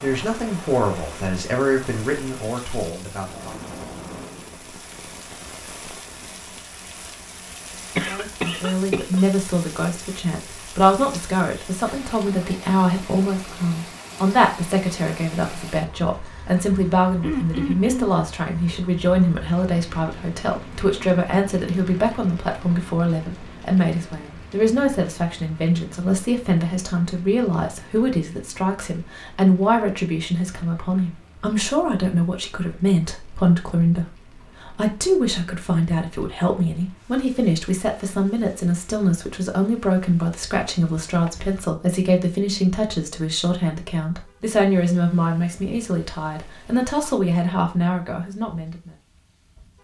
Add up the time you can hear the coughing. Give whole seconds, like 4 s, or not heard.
3 s.